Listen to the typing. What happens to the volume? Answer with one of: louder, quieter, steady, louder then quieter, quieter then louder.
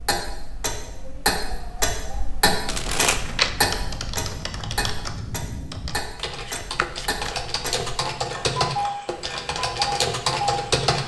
louder.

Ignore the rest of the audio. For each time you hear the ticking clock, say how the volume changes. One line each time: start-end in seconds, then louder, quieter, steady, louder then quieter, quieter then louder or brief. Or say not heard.
0.0-10.9 quieter then louder.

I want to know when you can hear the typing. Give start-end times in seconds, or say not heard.
2.5-11.0.